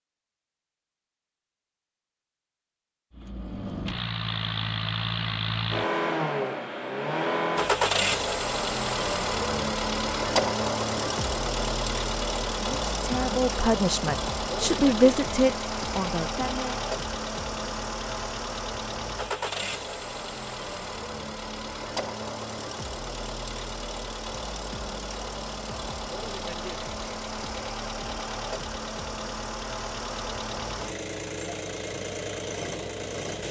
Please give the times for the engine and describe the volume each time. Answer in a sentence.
The engine can be heard from 3.1 to 33.4 s, getting quieter.